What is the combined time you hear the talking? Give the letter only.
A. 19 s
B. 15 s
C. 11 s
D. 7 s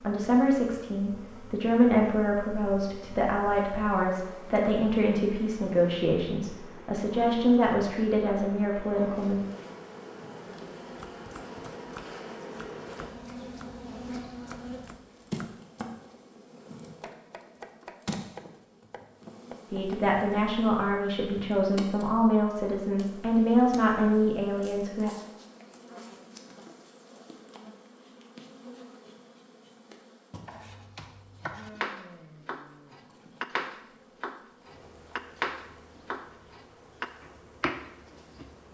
B.